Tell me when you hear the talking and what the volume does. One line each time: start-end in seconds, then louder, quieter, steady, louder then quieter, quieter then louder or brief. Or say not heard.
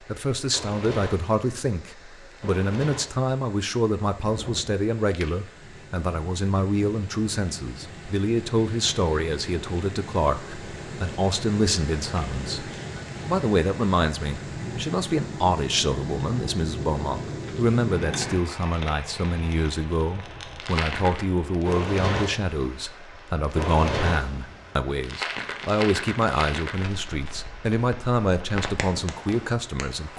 0.0-30.1 steady.